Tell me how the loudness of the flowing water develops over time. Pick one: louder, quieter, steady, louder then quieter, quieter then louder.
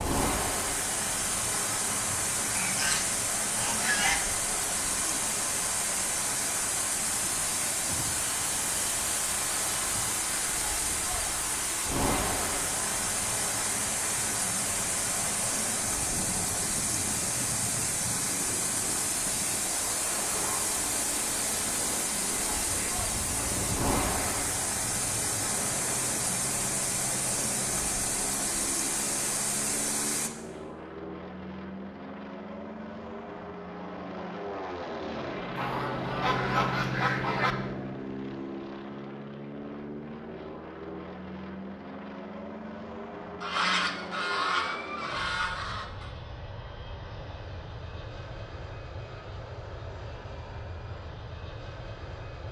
steady.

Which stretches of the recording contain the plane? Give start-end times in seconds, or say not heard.
0.0-52.4.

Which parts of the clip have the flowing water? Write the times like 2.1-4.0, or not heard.
0.0-30.3.